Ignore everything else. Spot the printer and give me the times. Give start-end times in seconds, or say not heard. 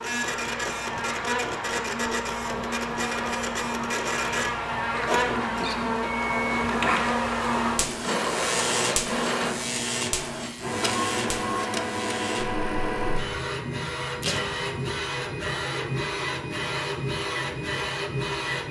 0.0-18.6.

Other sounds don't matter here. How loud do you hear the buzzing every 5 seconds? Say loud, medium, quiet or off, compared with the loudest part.
loud, loud, medium, off.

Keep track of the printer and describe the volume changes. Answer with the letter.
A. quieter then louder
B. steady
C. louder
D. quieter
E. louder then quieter
B.